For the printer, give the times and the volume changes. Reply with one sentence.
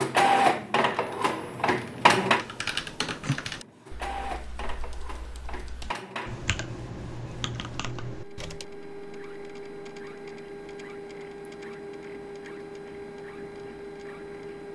You can hear the printer from 0.0 to 14.6 s, getting quieter.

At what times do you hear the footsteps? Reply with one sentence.
The footsteps can't be heard in this clip.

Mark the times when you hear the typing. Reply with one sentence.
You can hear the typing from 0.9 to 8.7 s.